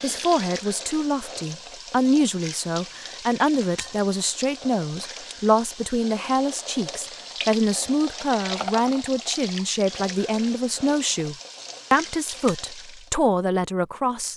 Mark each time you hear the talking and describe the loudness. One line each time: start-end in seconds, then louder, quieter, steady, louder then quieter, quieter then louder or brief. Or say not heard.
0.0-14.3 steady.